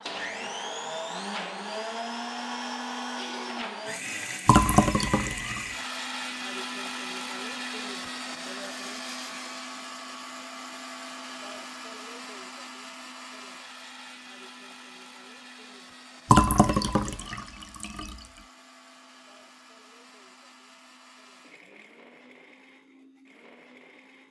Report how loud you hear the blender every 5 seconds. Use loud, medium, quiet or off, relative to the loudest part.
loud, loud, medium, quiet, quiet.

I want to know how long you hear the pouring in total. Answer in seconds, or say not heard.
3 s.